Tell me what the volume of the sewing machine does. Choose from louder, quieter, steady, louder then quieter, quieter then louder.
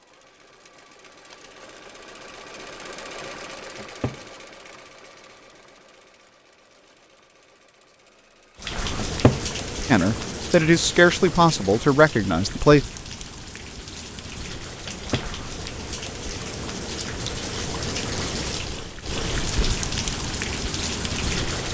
louder then quieter.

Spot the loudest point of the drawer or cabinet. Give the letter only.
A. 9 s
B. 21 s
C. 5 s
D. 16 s
A.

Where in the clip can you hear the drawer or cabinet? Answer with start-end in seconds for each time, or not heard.
3.8-4.2, 8.9-9.4, 14.8-15.3.